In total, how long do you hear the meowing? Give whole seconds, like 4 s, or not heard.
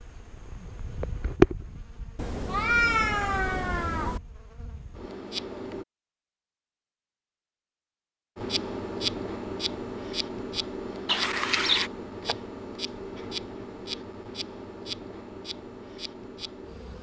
3 s.